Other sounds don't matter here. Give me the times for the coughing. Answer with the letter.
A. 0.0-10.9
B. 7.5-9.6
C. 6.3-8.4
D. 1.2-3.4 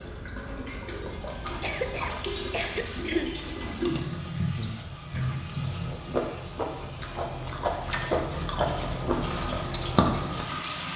D.